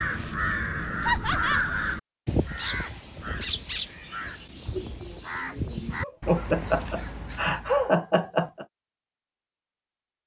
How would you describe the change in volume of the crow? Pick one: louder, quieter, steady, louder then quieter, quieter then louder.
quieter.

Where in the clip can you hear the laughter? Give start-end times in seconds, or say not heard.
1.1-1.8, 6.0-8.7.